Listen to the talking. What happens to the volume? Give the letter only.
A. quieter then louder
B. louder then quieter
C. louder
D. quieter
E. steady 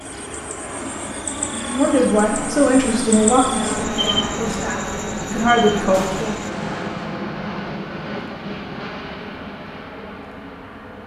A.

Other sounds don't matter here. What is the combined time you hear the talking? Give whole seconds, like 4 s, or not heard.
5 s.